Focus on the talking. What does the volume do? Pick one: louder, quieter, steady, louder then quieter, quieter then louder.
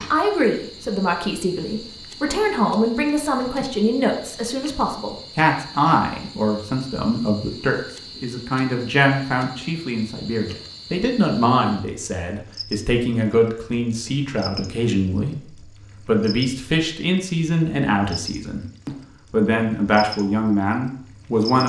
steady.